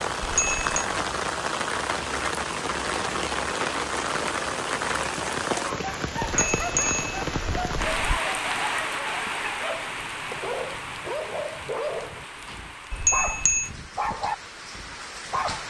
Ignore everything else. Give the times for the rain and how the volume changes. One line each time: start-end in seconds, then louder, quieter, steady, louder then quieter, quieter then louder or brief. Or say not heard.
0.0-15.6 quieter.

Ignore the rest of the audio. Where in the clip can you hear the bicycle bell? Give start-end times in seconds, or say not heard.
0.2-0.8, 6.3-8.2, 12.9-13.7.